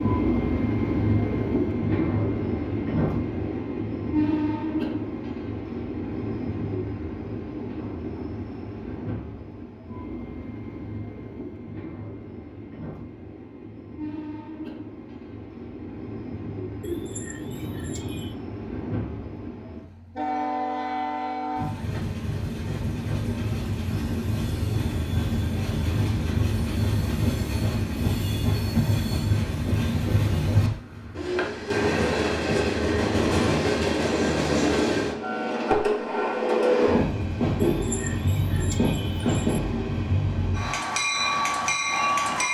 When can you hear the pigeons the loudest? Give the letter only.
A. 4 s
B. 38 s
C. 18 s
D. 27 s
B.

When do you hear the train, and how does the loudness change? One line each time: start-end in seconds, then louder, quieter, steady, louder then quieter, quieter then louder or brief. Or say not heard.
0.0-42.5 quieter then louder.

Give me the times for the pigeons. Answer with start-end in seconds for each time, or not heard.
16.8-18.4, 37.6-39.6.